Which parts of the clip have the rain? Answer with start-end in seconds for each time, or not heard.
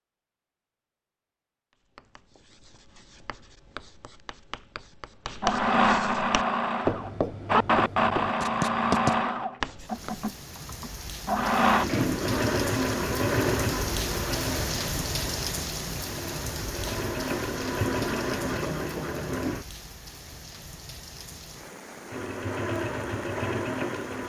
9.8-24.2.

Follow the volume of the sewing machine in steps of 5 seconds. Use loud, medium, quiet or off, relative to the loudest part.
off, loud, loud, medium, medium.